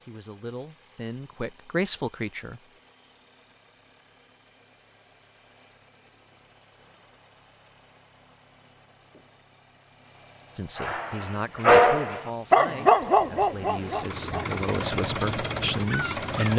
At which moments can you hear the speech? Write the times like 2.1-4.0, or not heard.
0.1-2.6, 10.6-16.5.